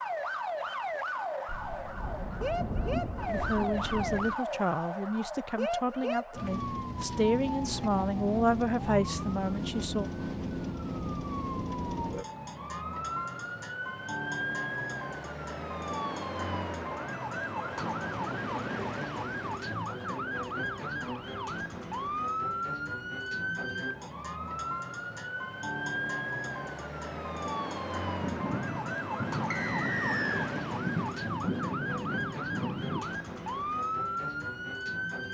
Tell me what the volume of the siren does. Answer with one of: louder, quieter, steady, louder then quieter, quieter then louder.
steady.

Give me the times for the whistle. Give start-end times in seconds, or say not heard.
29.5-30.5.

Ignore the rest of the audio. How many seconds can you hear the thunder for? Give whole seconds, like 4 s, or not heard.
8 s.